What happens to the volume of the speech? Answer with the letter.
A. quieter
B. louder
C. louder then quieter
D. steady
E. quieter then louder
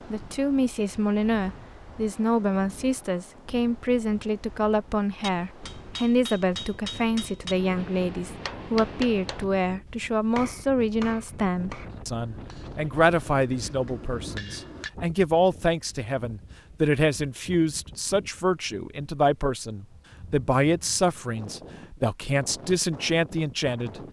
D.